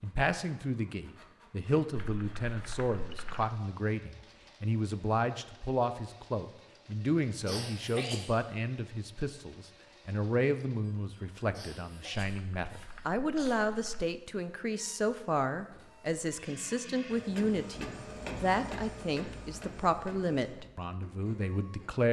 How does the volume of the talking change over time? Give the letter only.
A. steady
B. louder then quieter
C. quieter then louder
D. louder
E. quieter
A.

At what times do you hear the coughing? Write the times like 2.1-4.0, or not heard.
7.5-8.3, 11.5-13.6.